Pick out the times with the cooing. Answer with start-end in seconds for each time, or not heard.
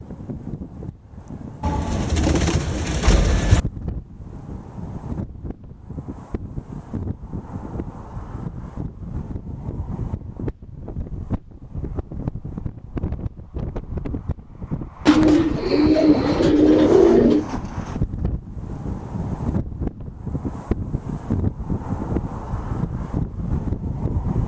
1.6-3.6, 15.1-17.4.